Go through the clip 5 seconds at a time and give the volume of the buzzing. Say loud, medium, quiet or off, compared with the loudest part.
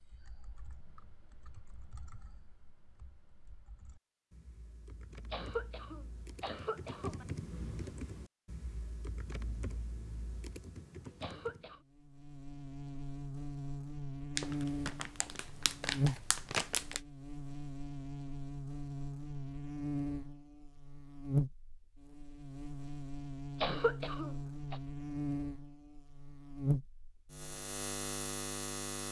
off, off, loud, loud, loud, loud.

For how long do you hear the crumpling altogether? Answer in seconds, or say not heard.
3 s.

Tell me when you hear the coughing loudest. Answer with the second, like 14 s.
24 s.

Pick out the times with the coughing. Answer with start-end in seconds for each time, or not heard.
5.3-7.2, 11.2-11.8, 23.6-24.8.